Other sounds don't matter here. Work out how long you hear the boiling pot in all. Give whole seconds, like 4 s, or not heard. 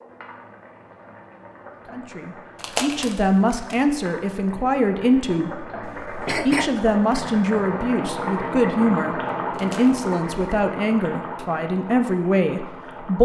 13 s.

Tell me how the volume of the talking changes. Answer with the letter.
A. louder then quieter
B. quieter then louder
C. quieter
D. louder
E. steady
E.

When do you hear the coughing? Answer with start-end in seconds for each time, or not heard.
5.8-6.7.